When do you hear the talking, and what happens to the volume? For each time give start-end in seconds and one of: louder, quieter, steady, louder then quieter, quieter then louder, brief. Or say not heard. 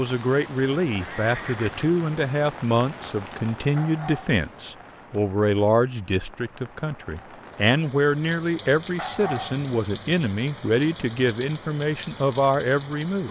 0.0-13.2 steady.